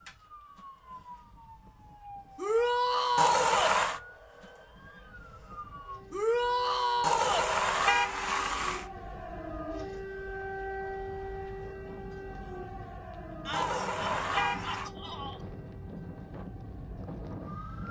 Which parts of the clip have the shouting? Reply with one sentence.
The shouting can be heard from 2.4 to 3.8 s, from 6.1 to 7.5 s and from 13.4 to 15.4 s.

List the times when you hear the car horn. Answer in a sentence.
You can hear the car horn from 3.1 to 4.0 s, from 7.0 to 8.8 s and from 13.5 to 14.9 s.